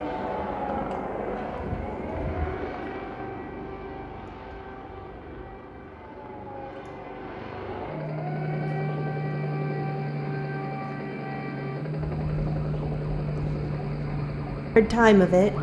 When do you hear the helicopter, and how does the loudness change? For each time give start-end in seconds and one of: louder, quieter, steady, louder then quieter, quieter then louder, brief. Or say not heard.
0.0-15.5 quieter then louder.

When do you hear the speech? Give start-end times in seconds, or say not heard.
14.8-15.5.